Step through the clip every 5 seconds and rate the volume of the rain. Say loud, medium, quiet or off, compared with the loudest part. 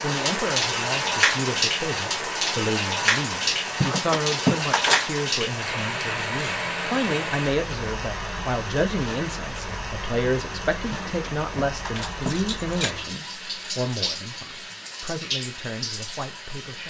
loud, medium, medium, medium.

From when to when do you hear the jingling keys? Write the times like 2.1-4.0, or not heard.
3.8-5.1, 10.9-12.9.